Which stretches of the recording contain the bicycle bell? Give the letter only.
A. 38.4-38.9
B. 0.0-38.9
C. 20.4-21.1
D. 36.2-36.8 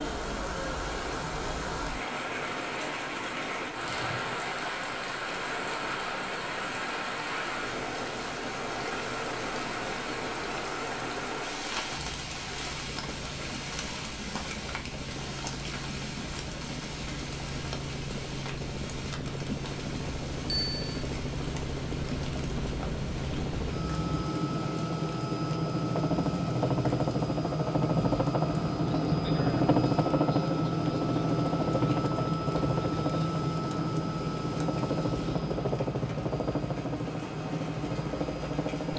C.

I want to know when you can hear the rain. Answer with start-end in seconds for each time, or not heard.
0.0-38.9.